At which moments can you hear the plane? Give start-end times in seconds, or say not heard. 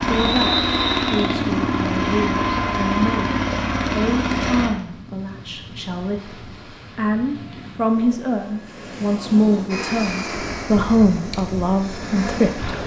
0.0-4.7, 9.7-12.8.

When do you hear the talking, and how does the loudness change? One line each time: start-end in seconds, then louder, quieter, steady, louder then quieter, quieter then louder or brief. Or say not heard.
0.1-12.7 louder.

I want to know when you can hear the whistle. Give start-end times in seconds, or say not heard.
0.1-1.4.